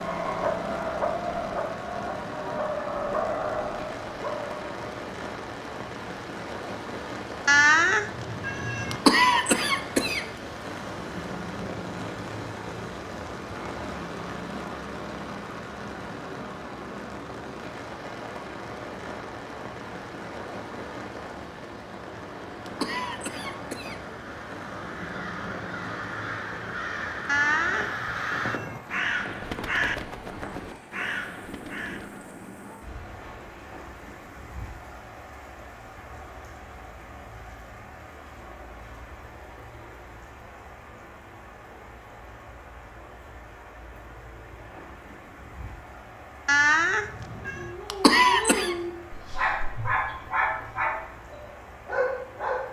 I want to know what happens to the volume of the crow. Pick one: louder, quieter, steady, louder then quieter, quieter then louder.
louder then quieter.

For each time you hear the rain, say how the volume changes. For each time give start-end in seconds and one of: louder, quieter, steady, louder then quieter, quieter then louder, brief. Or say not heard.
0.0-52.6 quieter.